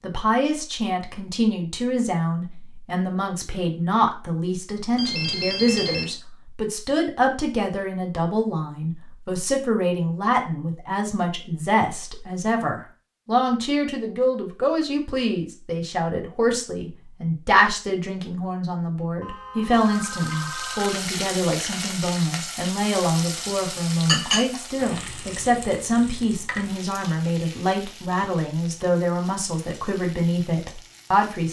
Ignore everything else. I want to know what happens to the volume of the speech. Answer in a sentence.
The loudness of the speech stays about the same.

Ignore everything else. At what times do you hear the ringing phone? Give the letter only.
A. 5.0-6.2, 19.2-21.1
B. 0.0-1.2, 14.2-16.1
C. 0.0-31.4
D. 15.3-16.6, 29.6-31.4
A.